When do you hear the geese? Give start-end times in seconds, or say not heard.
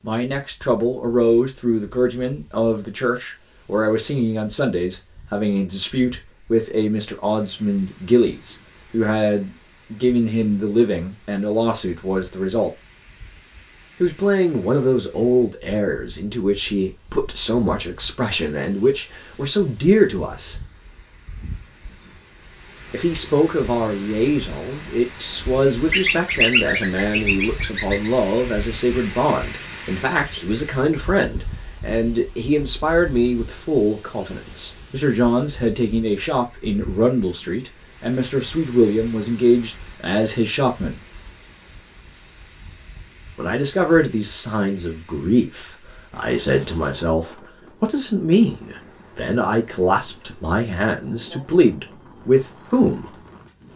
25.9-28.1.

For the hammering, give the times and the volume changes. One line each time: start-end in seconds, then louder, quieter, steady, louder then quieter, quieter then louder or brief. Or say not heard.
not heard.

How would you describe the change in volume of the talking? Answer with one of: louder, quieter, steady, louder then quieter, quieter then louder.
steady.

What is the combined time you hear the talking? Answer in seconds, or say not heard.
47 s.